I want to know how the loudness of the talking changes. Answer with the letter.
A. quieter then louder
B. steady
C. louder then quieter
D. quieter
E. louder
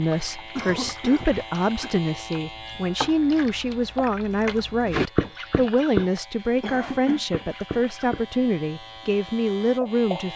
B.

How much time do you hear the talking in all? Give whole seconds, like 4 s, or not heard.
10 s.